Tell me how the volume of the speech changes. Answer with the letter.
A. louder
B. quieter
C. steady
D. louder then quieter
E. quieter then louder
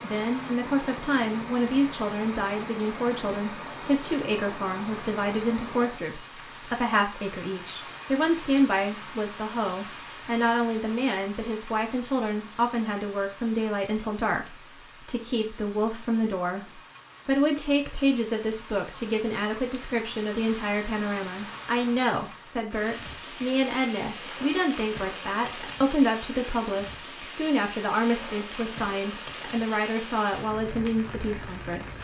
C.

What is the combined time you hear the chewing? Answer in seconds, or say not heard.
not heard.